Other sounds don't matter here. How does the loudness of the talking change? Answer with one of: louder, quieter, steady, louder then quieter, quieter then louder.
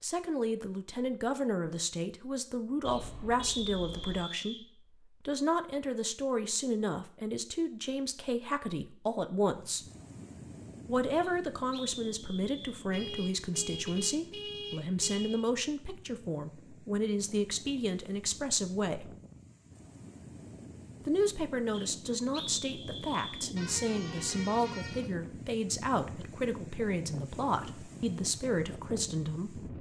steady.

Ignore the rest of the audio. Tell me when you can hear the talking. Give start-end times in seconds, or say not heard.
0.0-4.7, 5.2-9.8, 10.8-19.1, 21.1-29.7.